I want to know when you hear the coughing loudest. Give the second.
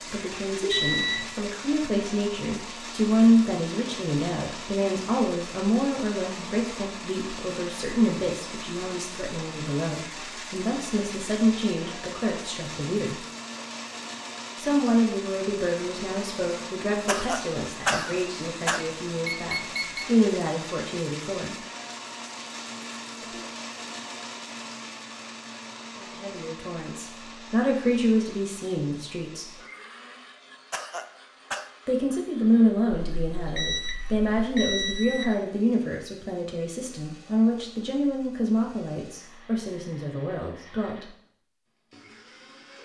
18 s.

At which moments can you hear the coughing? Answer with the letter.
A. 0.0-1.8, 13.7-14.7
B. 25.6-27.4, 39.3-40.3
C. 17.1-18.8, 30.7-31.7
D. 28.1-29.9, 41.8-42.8
C.